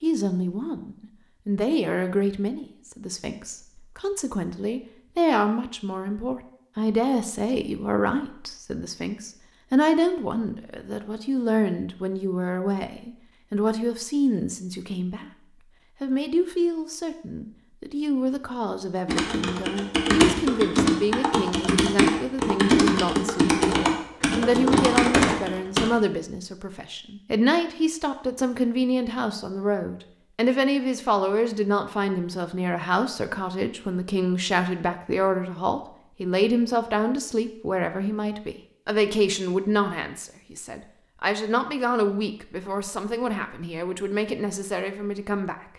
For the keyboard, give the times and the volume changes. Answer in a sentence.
You can hear the keyboard from 19.1 to 25.9 s, at a steady volume.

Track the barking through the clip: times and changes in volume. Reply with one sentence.
The barking can't be heard in this clip.